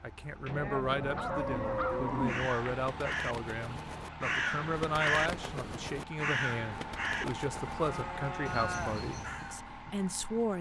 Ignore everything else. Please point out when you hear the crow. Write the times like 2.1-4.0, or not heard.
1.1-9.6.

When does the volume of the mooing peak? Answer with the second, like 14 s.
2 s.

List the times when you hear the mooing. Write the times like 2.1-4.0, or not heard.
0.5-2.5, 7.8-9.0.